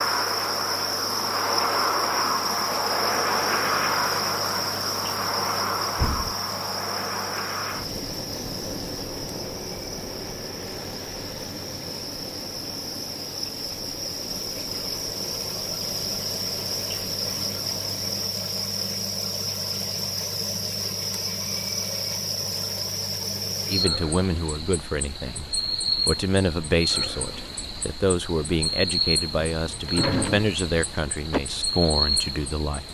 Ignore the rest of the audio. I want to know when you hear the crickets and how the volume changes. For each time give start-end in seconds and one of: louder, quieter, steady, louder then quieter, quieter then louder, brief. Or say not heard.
0.0-32.9 quieter then louder.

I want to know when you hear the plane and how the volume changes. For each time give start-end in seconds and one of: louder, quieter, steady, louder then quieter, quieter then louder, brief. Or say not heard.
0.0-18.2 quieter.